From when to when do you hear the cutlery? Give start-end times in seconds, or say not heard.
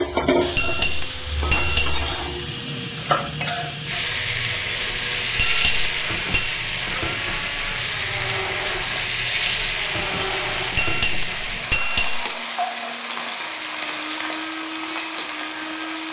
not heard.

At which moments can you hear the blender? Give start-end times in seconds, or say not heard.
0.4-16.0.